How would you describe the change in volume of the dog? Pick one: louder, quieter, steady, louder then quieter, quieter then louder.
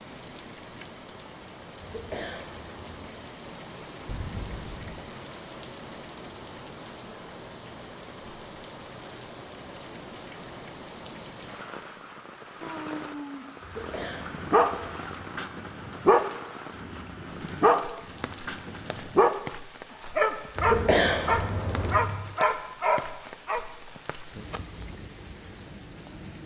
steady.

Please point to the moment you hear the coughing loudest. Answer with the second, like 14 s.
21 s.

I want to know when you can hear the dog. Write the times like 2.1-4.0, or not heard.
14.0-19.4, 20.1-23.6.